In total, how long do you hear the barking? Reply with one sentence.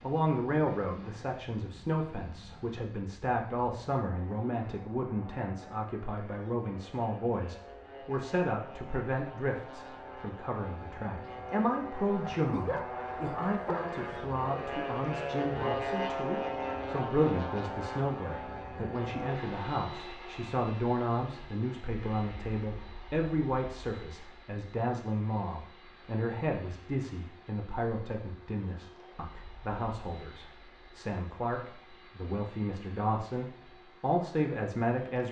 You can hear the barking for 2 seconds altogether.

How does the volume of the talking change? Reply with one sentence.
The volume of the talking stays about the same.